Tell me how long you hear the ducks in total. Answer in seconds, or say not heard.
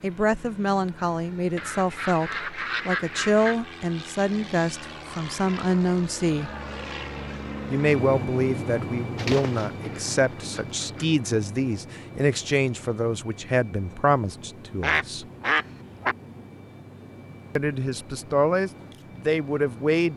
5 s.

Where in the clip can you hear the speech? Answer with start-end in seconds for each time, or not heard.
0.0-6.5, 7.7-15.2, 17.6-20.1.